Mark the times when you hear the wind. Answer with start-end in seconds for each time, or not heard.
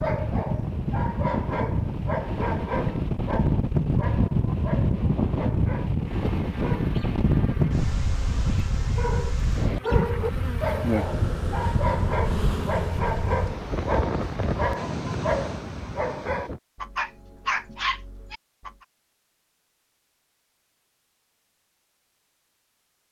0.0-16.6.